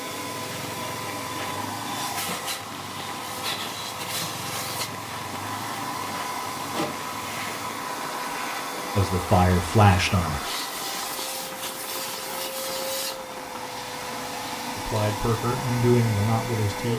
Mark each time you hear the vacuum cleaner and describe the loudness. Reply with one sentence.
You can hear the vacuum cleaner from 0.0 to 16.9 s, at a steady volume.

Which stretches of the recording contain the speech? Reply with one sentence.
The speech can be heard from 8.9 to 10.4 s and from 14.8 to 16.9 s.